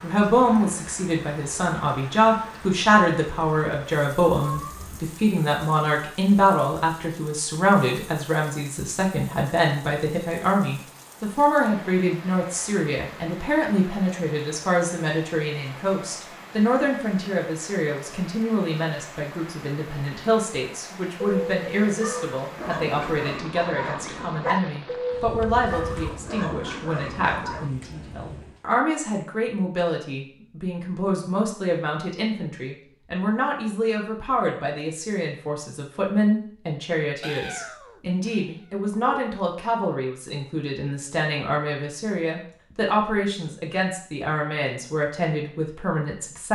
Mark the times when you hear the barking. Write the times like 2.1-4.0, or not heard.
21.2-27.7.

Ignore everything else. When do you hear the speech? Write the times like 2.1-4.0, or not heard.
0.0-46.4.